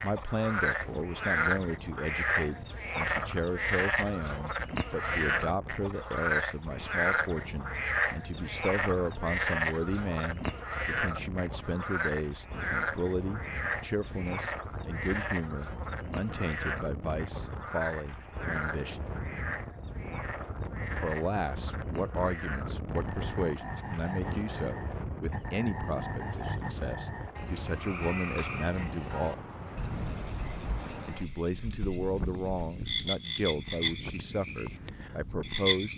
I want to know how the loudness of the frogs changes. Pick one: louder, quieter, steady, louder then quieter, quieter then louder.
quieter.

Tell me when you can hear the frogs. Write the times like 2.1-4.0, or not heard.
0.0-35.9.